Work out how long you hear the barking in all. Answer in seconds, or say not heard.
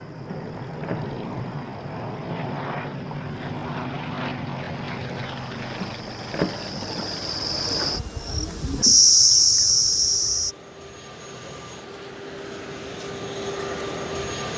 not heard.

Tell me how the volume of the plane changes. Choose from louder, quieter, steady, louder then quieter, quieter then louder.
quieter then louder.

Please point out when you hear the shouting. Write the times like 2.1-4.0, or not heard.
not heard.